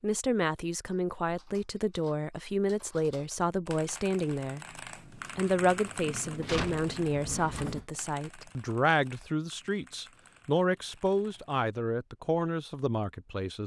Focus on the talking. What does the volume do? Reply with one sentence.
The loudness of the talking stays about the same.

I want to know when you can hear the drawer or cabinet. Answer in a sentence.
You can hear the drawer or cabinet from 6.3 to 7.8 s.